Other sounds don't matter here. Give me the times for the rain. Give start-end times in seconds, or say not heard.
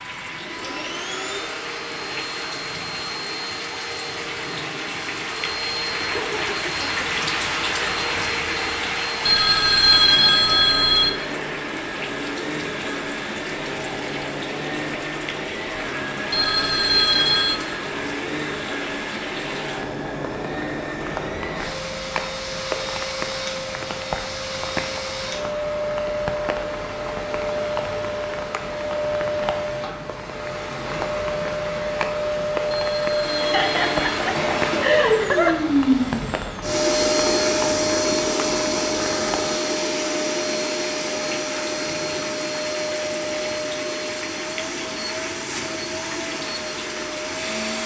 0.0-47.8.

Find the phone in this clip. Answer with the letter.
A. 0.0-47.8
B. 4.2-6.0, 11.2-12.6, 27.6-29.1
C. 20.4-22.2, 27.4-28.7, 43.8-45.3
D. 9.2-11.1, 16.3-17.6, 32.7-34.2
D.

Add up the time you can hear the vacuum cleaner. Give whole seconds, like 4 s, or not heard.
48 s.